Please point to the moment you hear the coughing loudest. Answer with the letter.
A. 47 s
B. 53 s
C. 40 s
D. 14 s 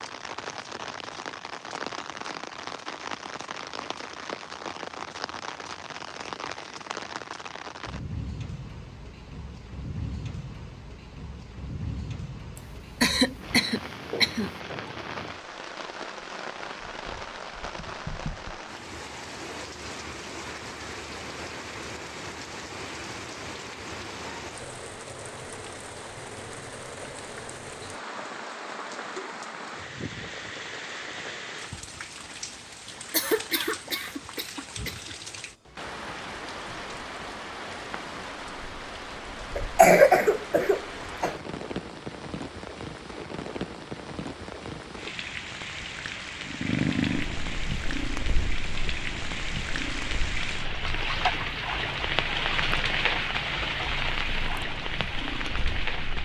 C.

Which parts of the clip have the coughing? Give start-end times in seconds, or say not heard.
13.0-14.5, 33.1-35.1, 39.5-41.4.